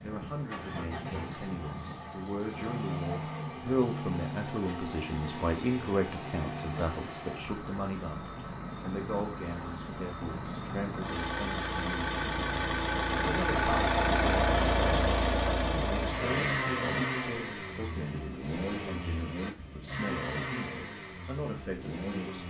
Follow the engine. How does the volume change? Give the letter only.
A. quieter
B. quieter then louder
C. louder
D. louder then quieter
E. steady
D.